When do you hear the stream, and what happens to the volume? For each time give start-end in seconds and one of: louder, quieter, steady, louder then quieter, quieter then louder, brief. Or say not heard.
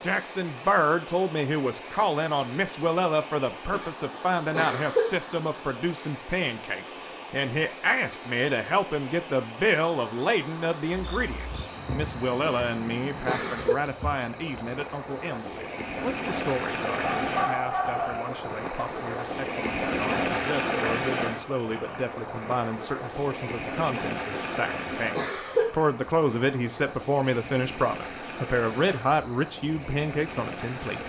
0.0-31.0 louder then quieter.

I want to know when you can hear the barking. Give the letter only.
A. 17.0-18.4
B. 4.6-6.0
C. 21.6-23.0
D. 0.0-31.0
A.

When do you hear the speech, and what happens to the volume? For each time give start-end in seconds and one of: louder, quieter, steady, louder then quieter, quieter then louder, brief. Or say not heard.
0.0-31.0 quieter then louder.